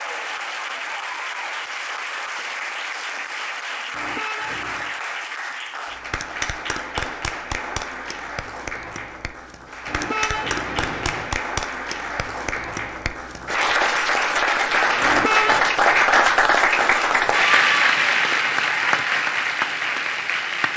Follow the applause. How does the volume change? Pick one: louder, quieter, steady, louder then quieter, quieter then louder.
louder.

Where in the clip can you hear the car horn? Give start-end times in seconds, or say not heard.
3.9-5.0, 9.8-11.4, 15.0-15.7.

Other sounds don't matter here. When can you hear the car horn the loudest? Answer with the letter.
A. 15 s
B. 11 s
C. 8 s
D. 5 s
A.